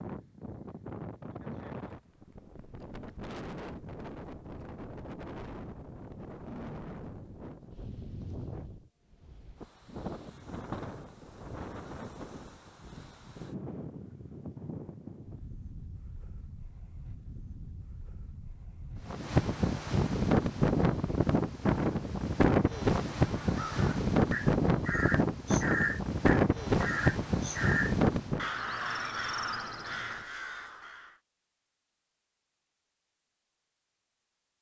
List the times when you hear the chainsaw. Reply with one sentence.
The chainsaw can't be heard in this clip.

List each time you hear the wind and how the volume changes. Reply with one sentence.
The wind can be heard from 0.0 to 28.4 s, getting louder.